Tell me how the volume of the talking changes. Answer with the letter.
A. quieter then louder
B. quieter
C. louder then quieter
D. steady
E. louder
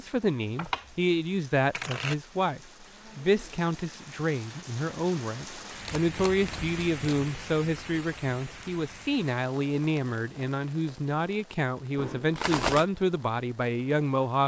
D.